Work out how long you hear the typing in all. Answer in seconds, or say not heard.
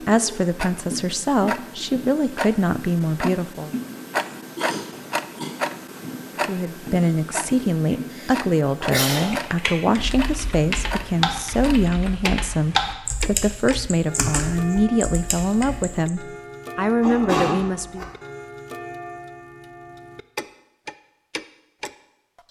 7 s.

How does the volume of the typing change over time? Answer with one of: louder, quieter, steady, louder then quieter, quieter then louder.
louder then quieter.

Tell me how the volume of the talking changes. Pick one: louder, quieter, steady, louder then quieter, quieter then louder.
steady.